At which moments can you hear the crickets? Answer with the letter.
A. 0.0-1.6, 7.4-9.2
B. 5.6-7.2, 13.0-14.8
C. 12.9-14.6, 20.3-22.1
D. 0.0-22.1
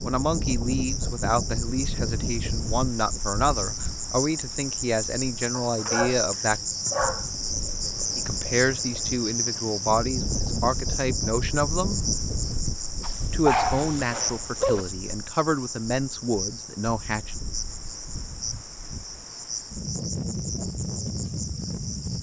D.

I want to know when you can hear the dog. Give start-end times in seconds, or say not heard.
5.6-7.2, 13.0-14.8.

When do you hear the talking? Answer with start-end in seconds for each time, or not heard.
0.0-6.6, 8.2-12.0, 13.3-17.3.